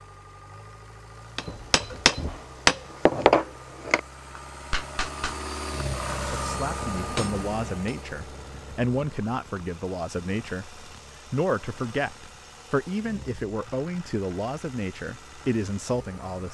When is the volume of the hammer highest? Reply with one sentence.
The loudest moment of the hammer is at 3 seconds.